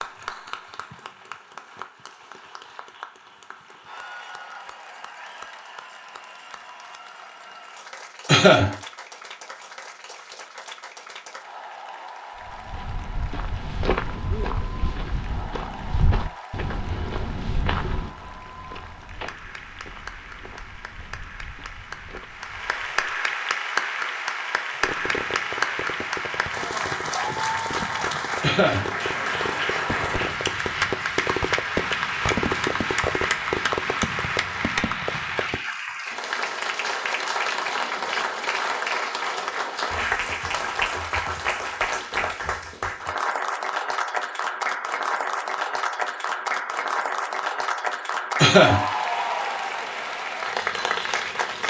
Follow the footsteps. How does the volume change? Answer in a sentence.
The volume of the footsteps goes down.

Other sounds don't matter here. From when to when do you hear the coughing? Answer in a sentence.
You can hear the coughing from 8.2 to 8.8 s, from 28.4 to 28.9 s and from 48.4 to 48.9 s.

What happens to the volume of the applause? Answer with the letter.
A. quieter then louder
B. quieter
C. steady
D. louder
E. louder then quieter
D.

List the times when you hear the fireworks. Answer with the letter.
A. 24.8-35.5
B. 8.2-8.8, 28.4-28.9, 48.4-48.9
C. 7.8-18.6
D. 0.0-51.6
A.